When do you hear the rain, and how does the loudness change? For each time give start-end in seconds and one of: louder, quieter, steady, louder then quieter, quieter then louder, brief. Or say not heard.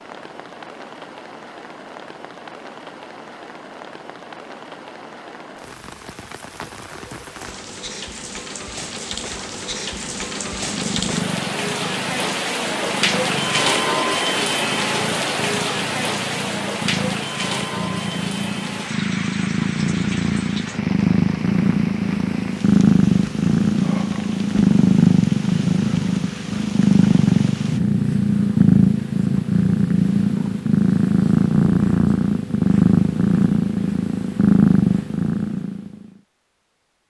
0.0-27.8 louder then quieter.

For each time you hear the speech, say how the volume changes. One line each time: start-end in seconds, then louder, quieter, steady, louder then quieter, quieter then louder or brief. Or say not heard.
not heard.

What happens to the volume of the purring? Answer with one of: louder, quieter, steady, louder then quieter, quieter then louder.
louder.